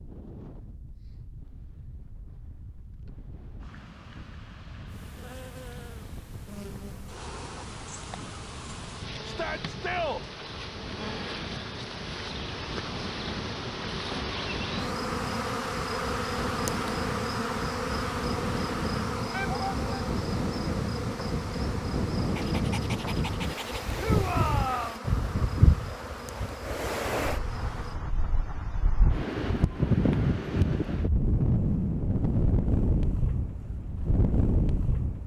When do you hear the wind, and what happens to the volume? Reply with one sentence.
You can hear the wind from 0.0 to 35.2 s, getting louder.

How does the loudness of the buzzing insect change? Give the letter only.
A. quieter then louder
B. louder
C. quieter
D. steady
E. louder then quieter
E.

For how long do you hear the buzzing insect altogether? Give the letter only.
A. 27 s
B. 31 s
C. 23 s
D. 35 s
C.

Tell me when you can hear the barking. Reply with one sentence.
You can hear the barking from 22.4 to 23.9 s.